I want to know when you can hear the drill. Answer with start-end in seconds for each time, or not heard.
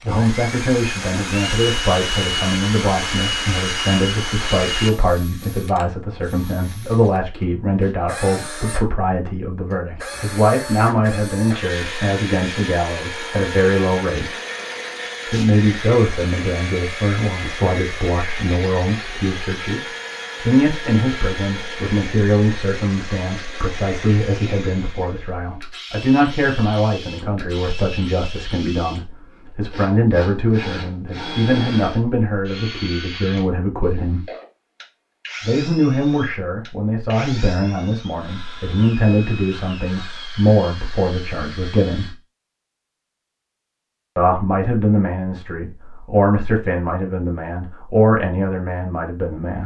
0.0-42.1.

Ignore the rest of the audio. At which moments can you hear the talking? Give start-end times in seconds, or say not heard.
0.0-14.3, 15.2-19.8, 20.4-34.2, 35.4-42.1, 44.1-49.6.